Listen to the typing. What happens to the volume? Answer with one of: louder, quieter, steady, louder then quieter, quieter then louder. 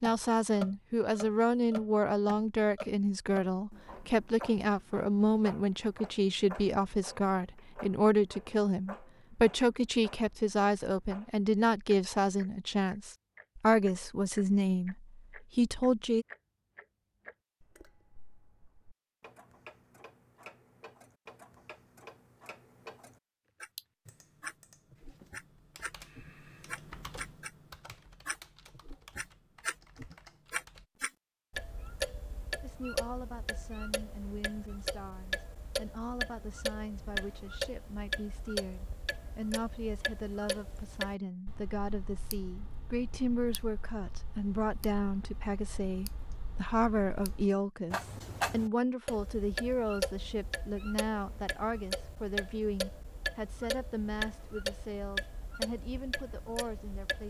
louder then quieter.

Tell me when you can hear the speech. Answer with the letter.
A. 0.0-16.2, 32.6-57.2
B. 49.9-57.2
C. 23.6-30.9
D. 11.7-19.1
A.